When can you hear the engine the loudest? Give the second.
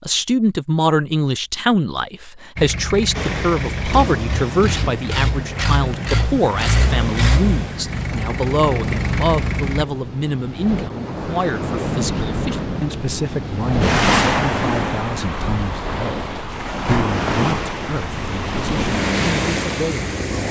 7 s.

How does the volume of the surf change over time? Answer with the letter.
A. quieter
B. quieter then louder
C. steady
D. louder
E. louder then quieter
D.